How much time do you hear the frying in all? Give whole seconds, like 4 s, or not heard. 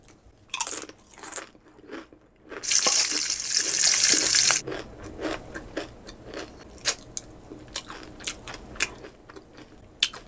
2 s.